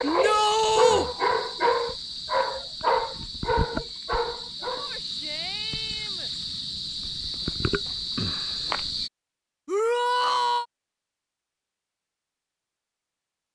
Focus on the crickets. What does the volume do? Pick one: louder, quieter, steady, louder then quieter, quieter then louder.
louder.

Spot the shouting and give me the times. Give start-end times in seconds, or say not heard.
0.0-1.1, 4.8-6.3, 9.7-10.7.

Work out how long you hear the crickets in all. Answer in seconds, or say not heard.
9 s.